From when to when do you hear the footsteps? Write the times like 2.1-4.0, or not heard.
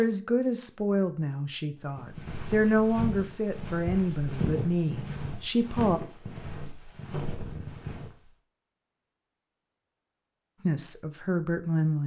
1.8-8.2.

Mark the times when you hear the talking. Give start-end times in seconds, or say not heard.
0.0-6.0, 10.7-12.0.